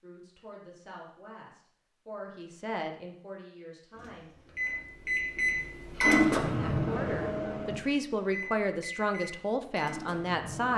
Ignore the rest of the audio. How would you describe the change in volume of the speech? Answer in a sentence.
The volume of the speech goes up.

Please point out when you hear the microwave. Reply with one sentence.
The microwave can be heard from 4.0 to 10.7 s.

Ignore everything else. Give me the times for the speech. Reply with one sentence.
You can hear the speech from 0.0 to 4.3 s and from 6.4 to 10.7 s.